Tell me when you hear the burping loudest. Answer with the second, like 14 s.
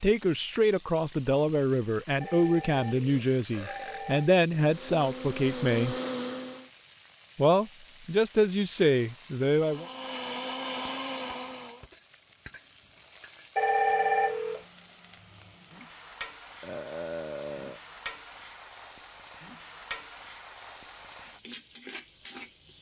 17 s.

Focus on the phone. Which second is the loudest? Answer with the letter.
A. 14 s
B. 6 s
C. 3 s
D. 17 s
A.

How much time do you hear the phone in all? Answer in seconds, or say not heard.
3 s.